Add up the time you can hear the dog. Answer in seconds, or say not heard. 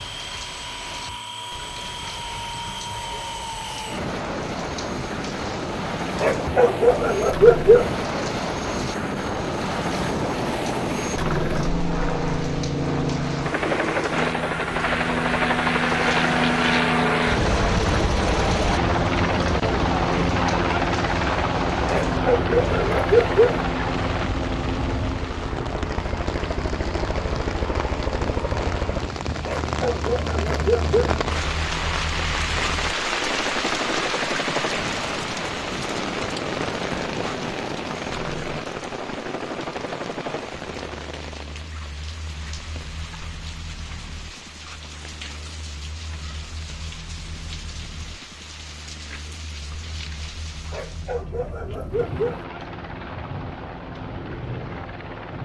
7 s.